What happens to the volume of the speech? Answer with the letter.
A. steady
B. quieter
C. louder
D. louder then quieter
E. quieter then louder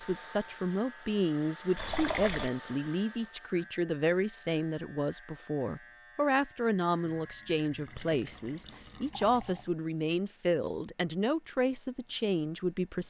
A.